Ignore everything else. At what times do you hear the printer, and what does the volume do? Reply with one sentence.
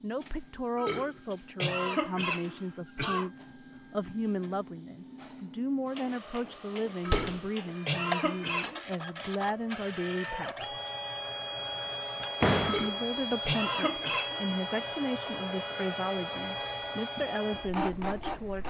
You can hear the printer from 0.0 to 18.6 s, getting louder.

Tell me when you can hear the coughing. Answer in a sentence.
You can hear the coughing from 0.8 to 3.3 s, from 7.0 to 8.8 s and from 12.6 to 14.4 s.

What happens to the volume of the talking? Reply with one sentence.
The loudness of the talking stays about the same.